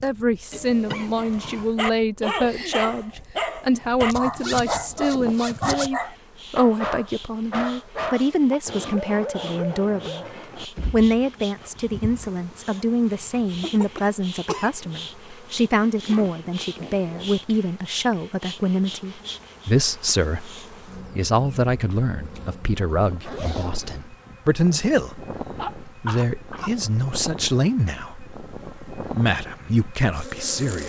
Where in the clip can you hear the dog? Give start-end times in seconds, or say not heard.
1.1-12.8.